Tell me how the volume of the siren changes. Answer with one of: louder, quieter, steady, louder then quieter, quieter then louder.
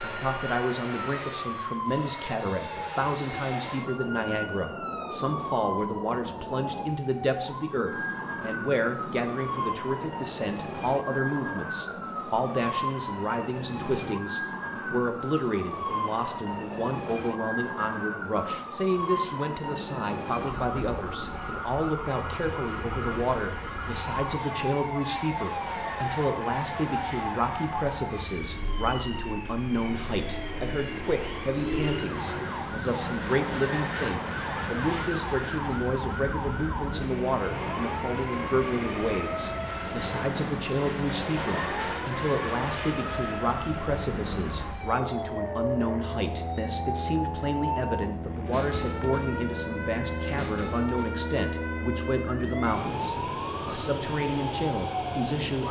steady.